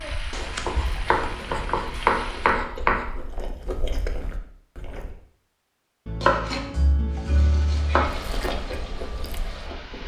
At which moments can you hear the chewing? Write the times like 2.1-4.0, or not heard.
0.0-5.2, 8.1-10.0.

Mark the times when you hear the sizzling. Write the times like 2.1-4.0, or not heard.
0.0-2.6, 7.0-10.0.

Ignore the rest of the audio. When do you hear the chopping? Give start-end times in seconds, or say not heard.
0.3-3.0, 6.0-8.1.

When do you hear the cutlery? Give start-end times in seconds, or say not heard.
not heard.